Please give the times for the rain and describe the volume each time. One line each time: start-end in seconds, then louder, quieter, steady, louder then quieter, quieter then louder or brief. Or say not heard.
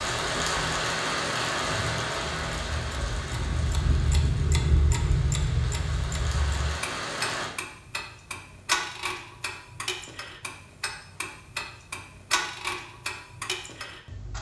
0.0-7.5 quieter then louder.